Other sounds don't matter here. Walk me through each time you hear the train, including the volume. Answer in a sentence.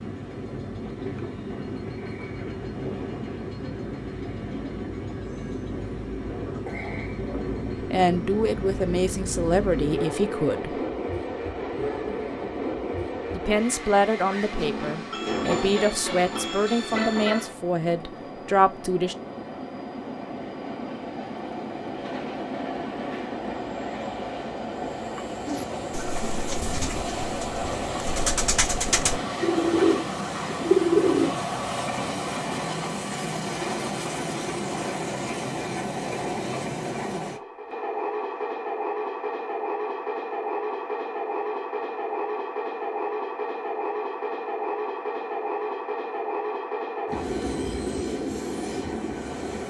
You can hear the train from 0.0 to 49.6 s, at a steady volume.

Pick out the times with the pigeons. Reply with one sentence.
The pigeons can be heard from 25.4 to 31.4 s.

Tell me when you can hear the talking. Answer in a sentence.
You can hear the talking from 7.9 to 10.8 s and from 13.3 to 19.1 s.